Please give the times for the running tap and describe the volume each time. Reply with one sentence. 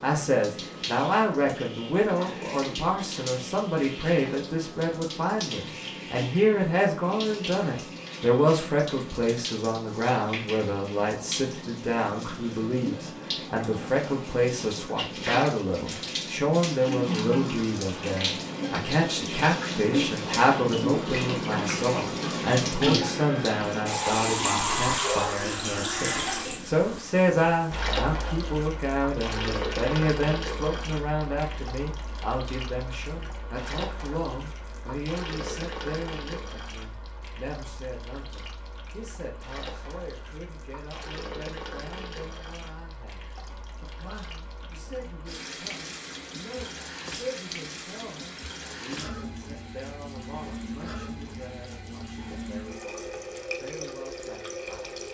You can hear the running tap from 0.0 to 55.0 s, getting louder then quieter.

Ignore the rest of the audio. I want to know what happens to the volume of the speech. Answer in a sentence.
The loudness of the speech goes down.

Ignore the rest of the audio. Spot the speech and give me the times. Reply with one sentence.
You can hear the speech from 0.0 to 55.0 s.